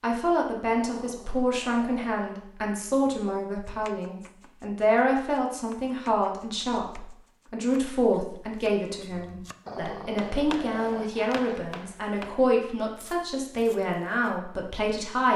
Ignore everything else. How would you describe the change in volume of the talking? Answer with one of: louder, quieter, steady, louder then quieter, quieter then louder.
steady.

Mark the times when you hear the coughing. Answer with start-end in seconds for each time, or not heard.
not heard.